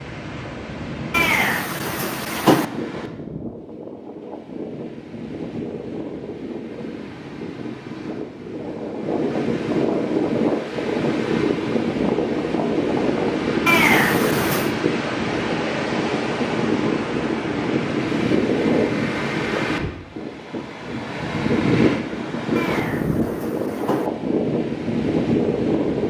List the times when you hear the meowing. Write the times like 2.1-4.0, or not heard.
1.1-2.6, 13.7-14.8, 22.6-24.1.